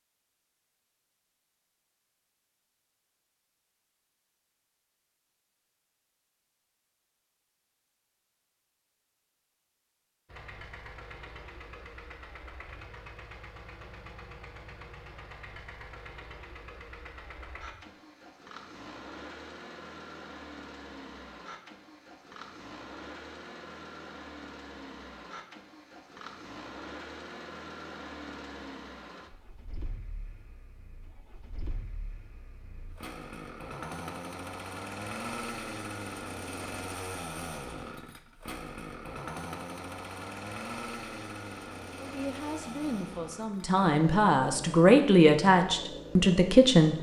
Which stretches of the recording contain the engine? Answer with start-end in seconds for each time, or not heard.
10.2-46.9.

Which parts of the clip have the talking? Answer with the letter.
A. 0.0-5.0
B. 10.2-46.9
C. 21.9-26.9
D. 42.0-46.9
D.